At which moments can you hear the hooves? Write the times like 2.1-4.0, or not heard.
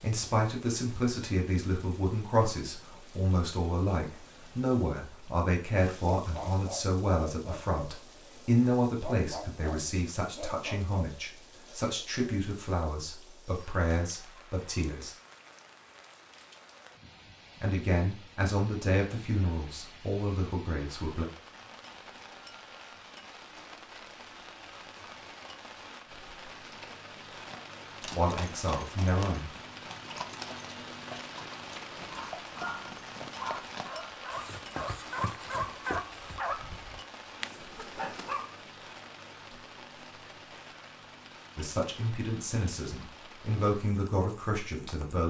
27.3-36.5.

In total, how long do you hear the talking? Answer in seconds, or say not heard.
24 s.